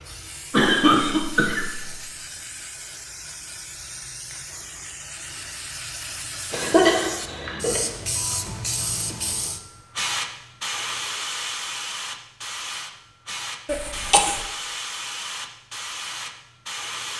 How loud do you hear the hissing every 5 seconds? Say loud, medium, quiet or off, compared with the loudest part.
medium, loud, loud, loud.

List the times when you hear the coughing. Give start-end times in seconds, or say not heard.
0.5-1.9, 6.5-7.8, 13.7-14.4.